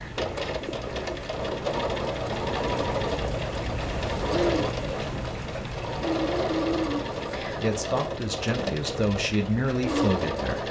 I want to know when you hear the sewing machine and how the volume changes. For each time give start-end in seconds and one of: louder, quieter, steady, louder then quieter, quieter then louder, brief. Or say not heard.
0.0-10.6 steady.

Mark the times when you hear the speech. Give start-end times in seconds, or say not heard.
7.5-10.6.